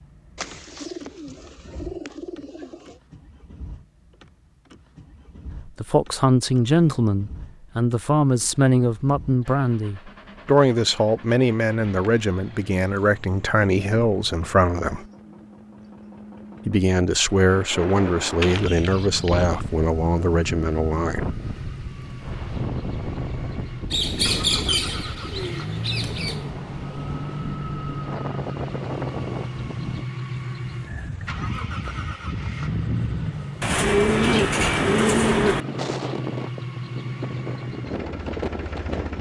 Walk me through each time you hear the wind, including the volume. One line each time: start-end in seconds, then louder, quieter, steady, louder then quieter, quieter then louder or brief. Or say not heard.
17.4-39.1 steady.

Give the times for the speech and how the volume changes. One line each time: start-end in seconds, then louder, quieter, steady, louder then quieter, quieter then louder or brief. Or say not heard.
5.7-15.1 steady
16.6-21.2 steady.